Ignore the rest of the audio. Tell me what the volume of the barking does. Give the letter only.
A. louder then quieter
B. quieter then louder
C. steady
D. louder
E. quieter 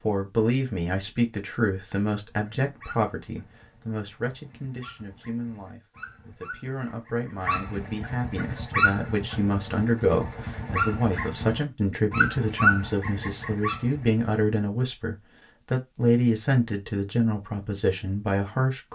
D.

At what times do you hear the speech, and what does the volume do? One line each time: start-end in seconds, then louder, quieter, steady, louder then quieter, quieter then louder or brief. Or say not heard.
0.0-18.9 quieter then louder.